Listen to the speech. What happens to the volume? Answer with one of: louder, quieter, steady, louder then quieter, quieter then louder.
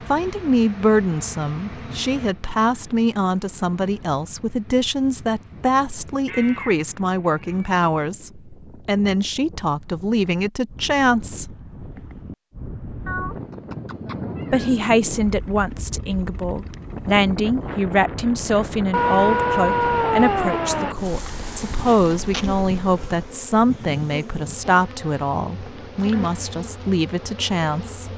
steady.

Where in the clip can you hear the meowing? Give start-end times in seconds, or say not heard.
6.2-7.8, 13.1-14.7, 18.9-20.9.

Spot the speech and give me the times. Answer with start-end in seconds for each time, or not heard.
0.1-11.6, 14.5-28.1.